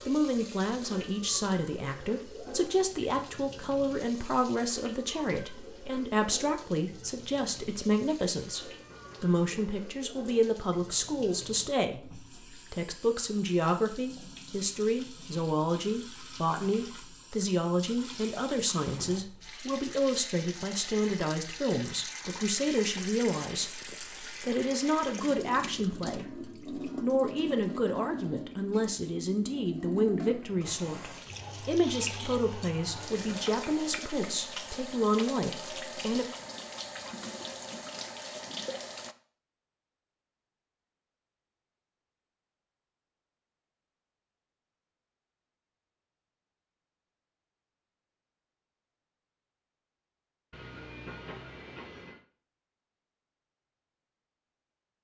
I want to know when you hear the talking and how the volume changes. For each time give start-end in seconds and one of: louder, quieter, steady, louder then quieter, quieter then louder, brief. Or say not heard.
0.1-36.2 steady.